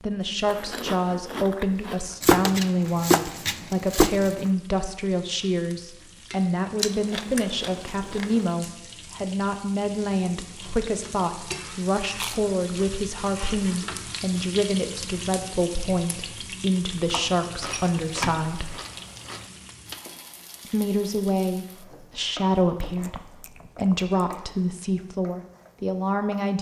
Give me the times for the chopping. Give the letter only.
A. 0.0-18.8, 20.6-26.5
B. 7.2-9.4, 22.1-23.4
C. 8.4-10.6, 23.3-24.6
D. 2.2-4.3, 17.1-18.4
D.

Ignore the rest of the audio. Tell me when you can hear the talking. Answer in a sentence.
You can hear the talking from 0.0 to 18.8 s and from 20.6 to 26.5 s.